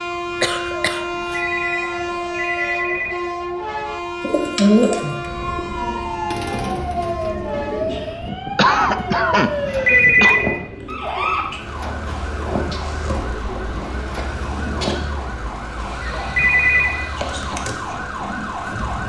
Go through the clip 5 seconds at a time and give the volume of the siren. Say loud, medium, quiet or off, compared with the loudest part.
quiet, loud, loud, loud.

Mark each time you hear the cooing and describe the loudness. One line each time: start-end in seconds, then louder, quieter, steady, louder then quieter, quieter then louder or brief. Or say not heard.
4.2-15.1 quieter.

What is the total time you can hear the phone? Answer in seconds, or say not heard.
3 s.